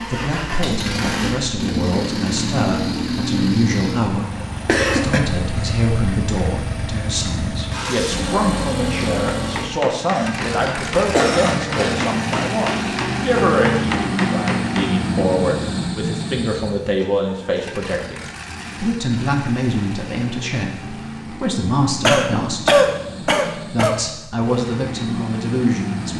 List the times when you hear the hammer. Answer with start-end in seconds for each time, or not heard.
9.1-14.9.